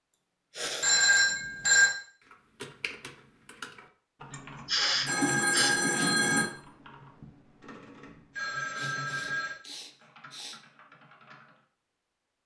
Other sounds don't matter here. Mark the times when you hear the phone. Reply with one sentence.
You can hear the phone from 0.8 to 1.9 s, from 5.0 to 6.5 s and from 8.3 to 9.6 s.